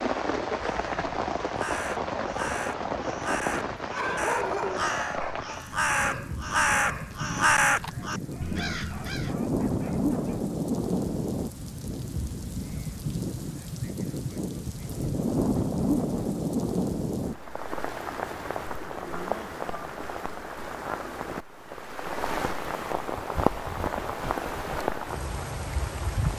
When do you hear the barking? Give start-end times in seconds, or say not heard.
3.9-10.4.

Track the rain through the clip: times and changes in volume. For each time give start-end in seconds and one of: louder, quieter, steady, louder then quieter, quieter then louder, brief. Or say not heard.
0.0-26.3 steady.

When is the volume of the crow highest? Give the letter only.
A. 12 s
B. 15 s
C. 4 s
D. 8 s
D.